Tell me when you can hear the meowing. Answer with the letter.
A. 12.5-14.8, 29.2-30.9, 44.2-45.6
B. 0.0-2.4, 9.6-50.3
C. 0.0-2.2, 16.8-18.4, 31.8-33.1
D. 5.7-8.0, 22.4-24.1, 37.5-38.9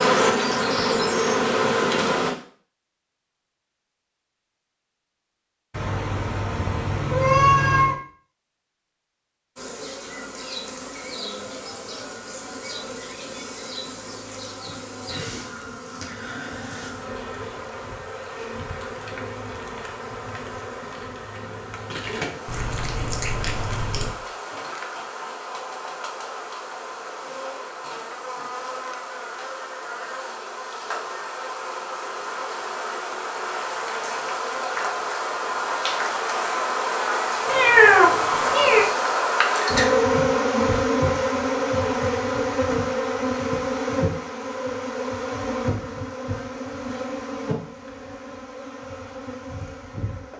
D.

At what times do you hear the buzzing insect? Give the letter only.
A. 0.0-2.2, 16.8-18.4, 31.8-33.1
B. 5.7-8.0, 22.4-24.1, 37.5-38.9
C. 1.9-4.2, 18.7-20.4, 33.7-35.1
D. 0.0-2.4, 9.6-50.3
D.